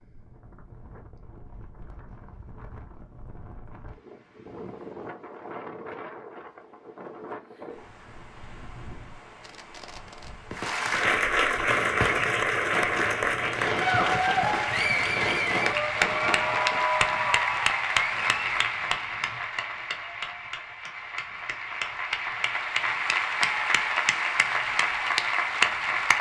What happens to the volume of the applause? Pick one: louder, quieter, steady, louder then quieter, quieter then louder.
quieter then louder.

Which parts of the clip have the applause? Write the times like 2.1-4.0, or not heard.
10.5-26.1.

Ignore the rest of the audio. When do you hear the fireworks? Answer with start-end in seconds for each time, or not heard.
9.4-16.9.